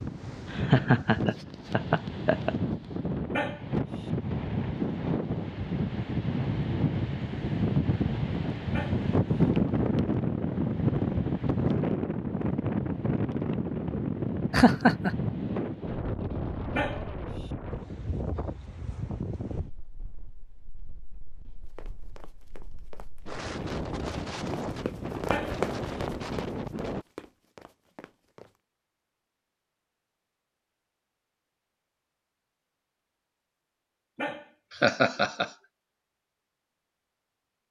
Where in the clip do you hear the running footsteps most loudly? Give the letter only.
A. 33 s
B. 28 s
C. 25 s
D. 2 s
C.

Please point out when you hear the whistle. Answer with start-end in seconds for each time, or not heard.
not heard.